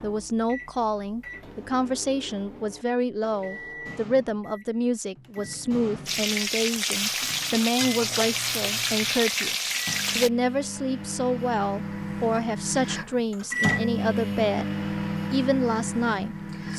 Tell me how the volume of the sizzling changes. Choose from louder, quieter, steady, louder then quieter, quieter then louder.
steady.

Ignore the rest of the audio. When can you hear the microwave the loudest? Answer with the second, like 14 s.
14 s.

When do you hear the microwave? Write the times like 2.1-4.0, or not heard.
0.0-16.7.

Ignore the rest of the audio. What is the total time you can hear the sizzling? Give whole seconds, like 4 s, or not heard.
4 s.